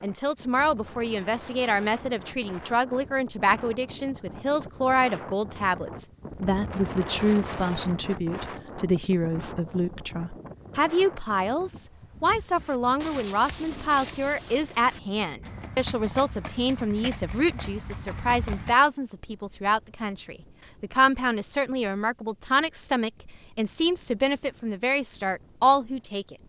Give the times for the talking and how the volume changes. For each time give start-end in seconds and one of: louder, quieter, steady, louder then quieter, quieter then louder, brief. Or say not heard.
0.0-26.4 steady.